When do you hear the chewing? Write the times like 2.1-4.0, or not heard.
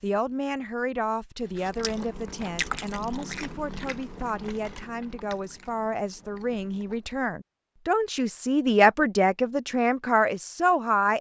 1.4-7.2.